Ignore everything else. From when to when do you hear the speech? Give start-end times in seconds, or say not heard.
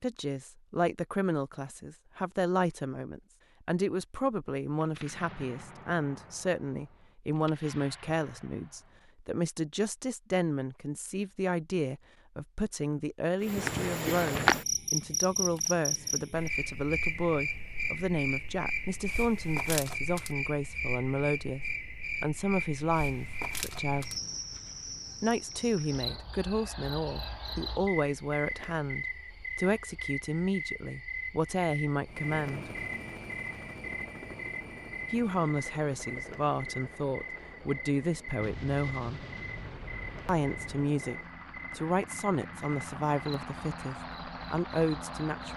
0.0-24.1, 25.2-32.7, 35.1-39.2, 40.2-41.1, 41.8-45.5.